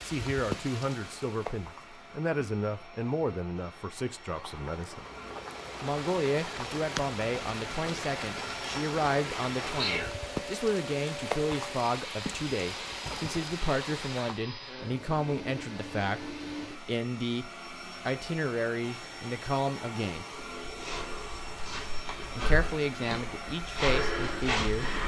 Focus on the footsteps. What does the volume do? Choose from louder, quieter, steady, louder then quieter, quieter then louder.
louder.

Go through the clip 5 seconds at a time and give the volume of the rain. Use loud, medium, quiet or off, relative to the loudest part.
loud, loud, loud, off, off.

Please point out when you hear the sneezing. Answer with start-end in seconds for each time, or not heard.
9.7-10.2.